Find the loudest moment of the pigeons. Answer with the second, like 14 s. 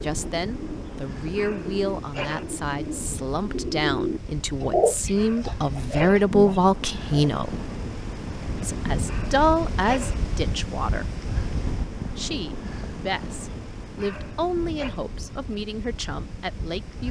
5 s.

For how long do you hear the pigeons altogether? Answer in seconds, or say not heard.
7 s.